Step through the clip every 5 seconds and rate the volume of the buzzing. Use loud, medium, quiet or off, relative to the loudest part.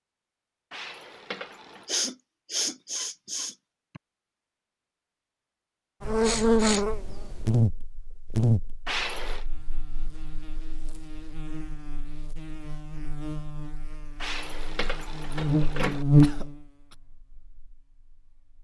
off, loud, quiet, loud.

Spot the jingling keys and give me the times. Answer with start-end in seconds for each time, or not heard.
0.7-1.9, 8.8-9.4, 14.2-16.1.